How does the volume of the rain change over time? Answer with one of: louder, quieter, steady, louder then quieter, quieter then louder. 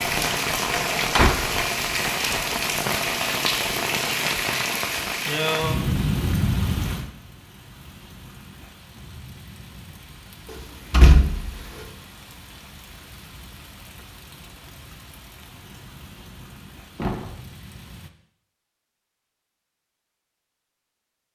quieter.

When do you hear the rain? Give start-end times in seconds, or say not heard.
0.0-18.1.